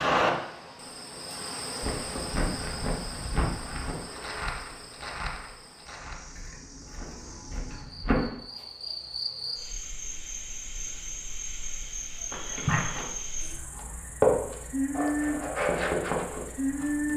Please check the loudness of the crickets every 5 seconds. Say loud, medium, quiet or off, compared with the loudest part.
loud, medium, medium, loud.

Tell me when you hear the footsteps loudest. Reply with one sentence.
The volume of the footsteps peaks at 14 seconds.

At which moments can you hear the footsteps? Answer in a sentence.
The footsteps can be heard from 1.8 to 8.2 s and from 12.3 to 17.1 s.